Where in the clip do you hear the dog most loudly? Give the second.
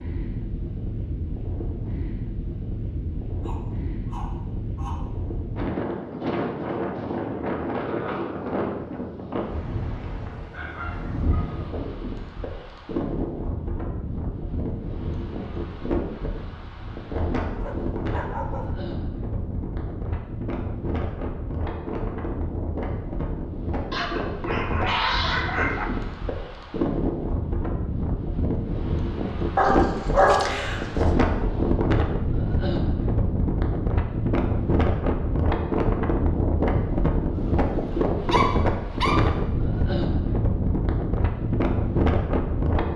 30 s.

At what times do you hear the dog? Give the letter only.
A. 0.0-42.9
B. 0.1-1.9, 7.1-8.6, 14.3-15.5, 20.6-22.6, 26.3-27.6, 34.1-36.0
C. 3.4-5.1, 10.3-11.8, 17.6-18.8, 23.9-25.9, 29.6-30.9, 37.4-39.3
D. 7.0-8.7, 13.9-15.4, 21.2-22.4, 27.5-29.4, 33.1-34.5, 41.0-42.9
C.